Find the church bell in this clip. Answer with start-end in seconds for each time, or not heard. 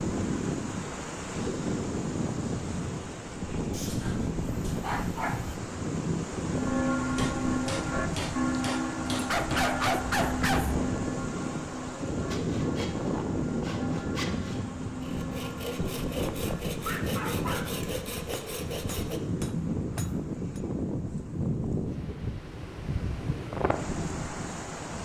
6.5-16.6.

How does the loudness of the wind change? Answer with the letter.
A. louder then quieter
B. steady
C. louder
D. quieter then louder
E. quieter
B.